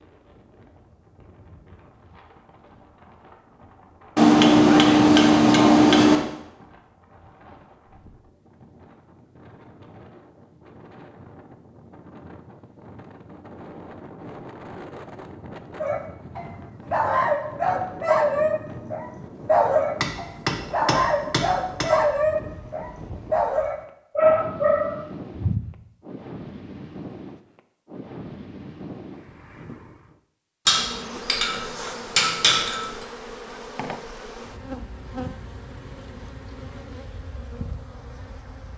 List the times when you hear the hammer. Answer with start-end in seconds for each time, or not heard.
4.2-6.2, 20.0-21.9, 30.6-33.0.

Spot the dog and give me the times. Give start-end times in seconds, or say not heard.
15.8-25.7.